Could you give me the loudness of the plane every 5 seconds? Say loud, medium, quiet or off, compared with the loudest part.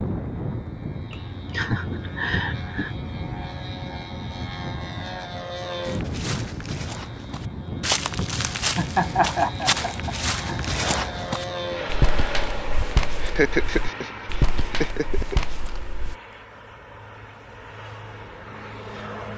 loud, loud, loud, medium.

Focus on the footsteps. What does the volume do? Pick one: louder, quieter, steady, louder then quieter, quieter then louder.
steady.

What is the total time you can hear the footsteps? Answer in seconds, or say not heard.
10 s.